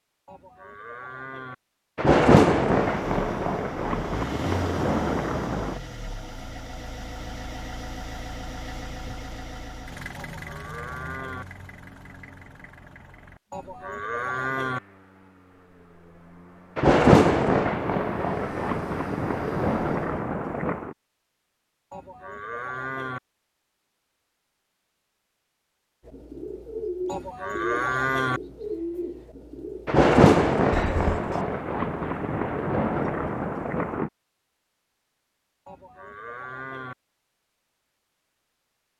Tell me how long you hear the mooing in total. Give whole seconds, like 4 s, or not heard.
8 s.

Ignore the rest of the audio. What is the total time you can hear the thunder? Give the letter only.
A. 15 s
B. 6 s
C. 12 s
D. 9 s
C.